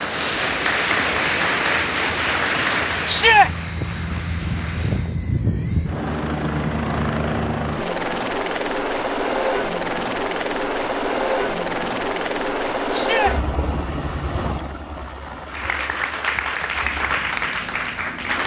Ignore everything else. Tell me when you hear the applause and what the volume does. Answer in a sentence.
The applause can be heard from 0.0 to 5.2 s, getting quieter; and briefly from 15.4 to 18.4 s.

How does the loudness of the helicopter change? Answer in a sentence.
The volume of the helicopter goes up, then down.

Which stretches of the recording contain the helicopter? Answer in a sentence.
You can hear the helicopter from 0.0 to 18.4 s.